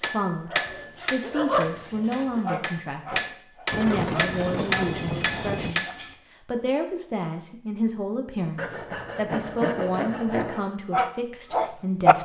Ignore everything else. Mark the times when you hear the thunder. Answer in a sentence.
You can hear the thunder from 3.7 to 5.8 s.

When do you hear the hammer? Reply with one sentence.
You can hear the hammer from 0.0 to 6.0 s.